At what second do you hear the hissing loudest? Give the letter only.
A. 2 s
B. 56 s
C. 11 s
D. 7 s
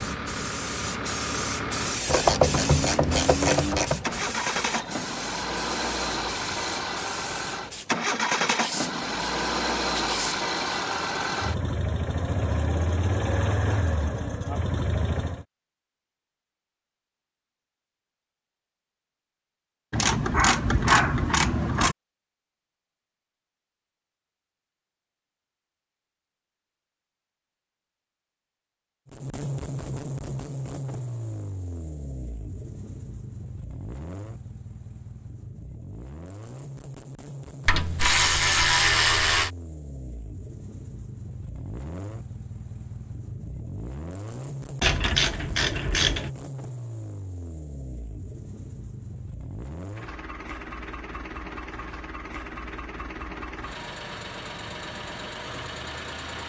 A.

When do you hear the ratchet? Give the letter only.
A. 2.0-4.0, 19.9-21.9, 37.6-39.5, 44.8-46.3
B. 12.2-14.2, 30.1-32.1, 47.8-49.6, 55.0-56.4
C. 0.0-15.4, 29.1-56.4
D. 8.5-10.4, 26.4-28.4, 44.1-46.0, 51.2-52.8
A.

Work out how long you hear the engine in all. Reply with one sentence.
The engine can be heard for 43 seconds in total.